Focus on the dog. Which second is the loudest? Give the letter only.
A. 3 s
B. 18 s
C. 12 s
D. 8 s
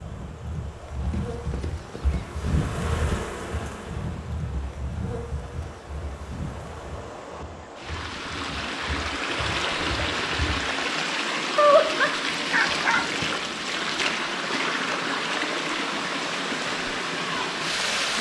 C.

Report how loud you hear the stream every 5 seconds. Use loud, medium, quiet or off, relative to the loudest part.
quiet, medium, loud, loud.